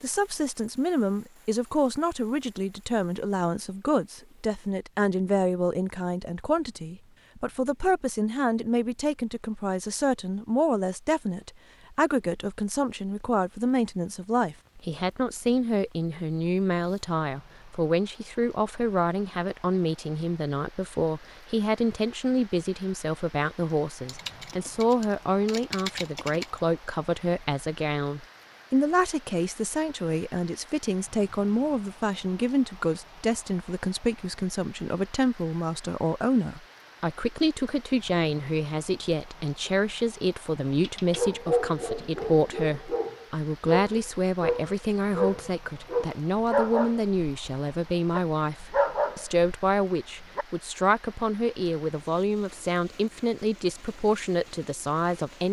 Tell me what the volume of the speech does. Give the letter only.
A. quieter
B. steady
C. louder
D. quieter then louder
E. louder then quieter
B.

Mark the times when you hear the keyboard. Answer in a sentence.
The keyboard can be heard from 24.1 to 26.6 s.